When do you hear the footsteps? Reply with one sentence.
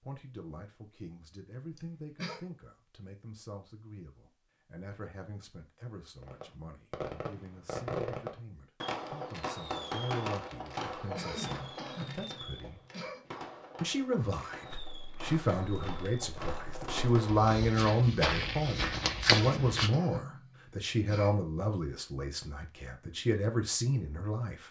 You can hear the footsteps from 14.7 to 19.9 s.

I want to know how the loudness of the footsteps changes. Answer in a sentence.
The volume of the footsteps goes up.